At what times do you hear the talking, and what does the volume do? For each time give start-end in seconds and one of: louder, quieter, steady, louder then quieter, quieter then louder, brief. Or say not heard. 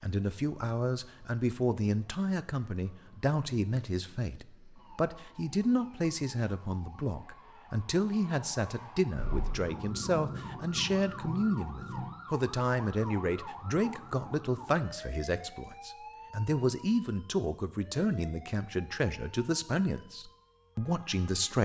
0.0-21.6 steady.